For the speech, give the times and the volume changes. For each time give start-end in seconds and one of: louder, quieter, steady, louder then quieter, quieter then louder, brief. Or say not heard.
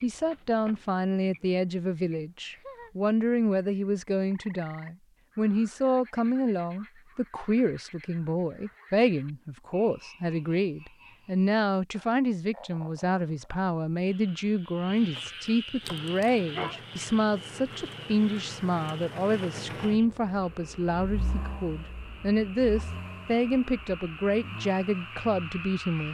0.0-26.0 steady.